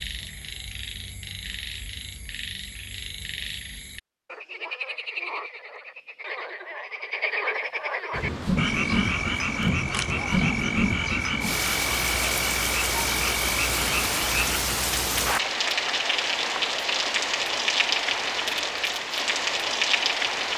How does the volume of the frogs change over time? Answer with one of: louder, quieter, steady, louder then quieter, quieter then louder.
louder.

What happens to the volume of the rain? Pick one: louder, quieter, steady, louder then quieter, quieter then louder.
steady.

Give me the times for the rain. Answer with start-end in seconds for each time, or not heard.
8.1-20.5.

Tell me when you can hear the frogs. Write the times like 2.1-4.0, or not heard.
0.0-14.6.